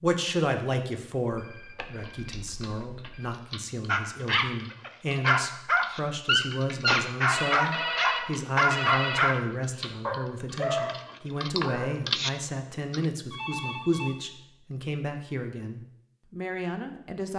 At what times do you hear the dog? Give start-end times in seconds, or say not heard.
3.9-11.9.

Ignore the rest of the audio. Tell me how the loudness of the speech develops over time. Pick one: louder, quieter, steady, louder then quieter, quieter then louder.
steady.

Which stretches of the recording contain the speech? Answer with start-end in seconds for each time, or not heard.
0.0-17.3.